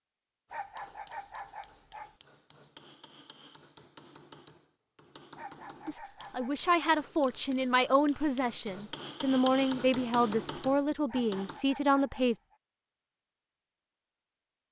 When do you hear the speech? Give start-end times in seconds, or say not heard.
5.8-12.3.